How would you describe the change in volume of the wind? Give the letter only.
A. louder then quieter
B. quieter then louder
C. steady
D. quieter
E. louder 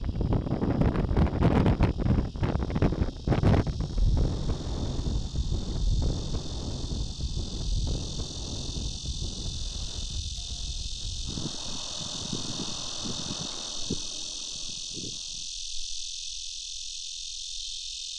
D.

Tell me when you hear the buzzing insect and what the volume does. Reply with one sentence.
The buzzing insect can be heard from 0.0 to 18.1 s, getting louder.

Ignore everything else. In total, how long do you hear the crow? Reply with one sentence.
The crow can't be heard in this clip.